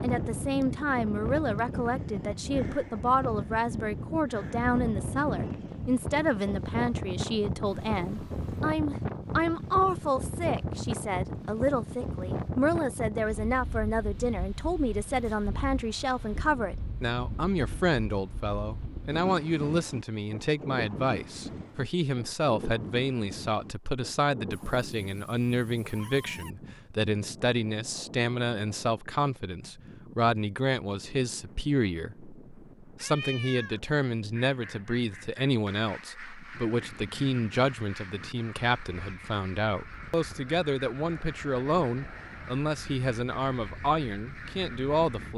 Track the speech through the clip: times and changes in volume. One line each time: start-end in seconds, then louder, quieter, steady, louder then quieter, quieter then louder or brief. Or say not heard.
0.0-45.3 steady.